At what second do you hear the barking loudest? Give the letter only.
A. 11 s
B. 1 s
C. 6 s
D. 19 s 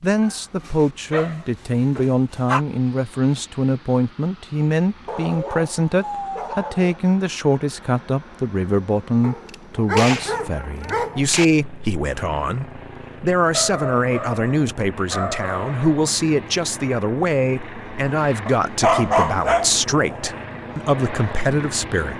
D.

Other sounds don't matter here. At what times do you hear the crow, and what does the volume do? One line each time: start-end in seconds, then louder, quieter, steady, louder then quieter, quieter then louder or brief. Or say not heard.
not heard.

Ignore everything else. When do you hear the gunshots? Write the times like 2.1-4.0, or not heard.
9.4-11.4.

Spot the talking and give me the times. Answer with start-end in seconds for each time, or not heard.
0.0-22.1.